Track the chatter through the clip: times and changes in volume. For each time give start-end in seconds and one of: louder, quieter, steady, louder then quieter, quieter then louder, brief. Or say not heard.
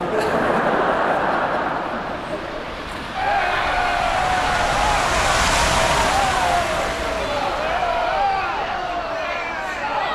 0.0-10.1 steady.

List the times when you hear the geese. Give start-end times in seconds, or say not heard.
not heard.